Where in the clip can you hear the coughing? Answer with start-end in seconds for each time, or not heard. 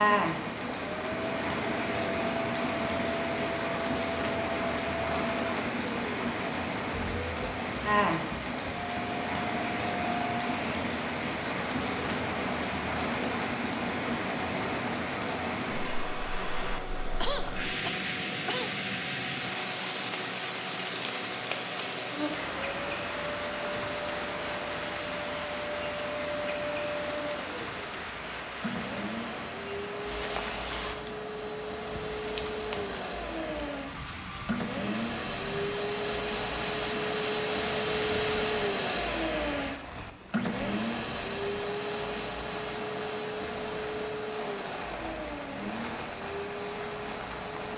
17.1-18.8.